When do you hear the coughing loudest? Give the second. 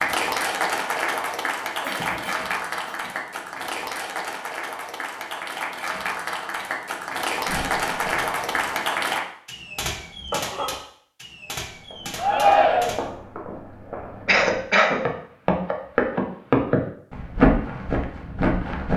15 s.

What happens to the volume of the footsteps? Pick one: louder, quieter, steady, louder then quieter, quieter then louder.
louder.